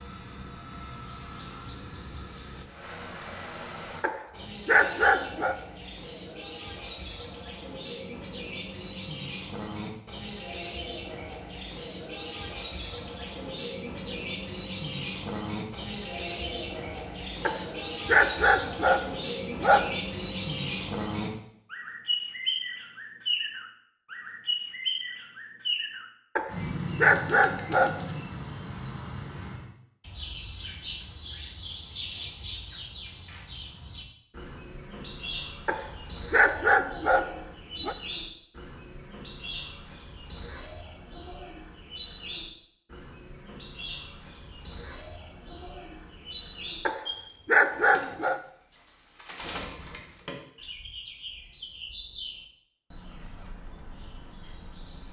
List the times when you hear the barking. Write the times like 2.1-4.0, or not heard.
4.0-5.5, 17.4-19.9, 26.4-28.1, 35.6-38.0, 46.9-48.4.